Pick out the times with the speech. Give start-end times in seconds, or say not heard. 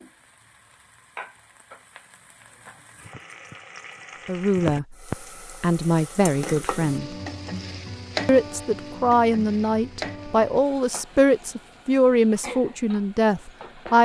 4.2-5.0, 5.6-7.2, 8.2-14.0.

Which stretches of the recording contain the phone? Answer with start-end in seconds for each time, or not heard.
not heard.